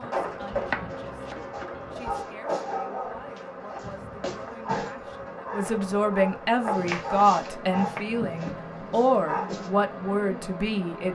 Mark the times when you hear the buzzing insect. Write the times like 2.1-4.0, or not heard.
0.0-11.0.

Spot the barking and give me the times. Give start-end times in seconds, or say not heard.
0.8-9.7.